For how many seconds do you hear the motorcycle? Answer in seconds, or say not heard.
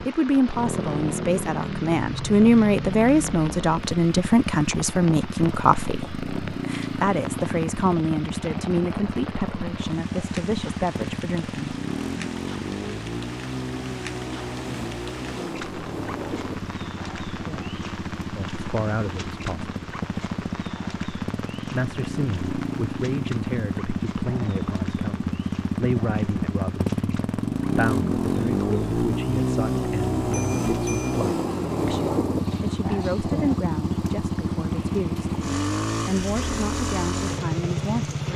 38 s.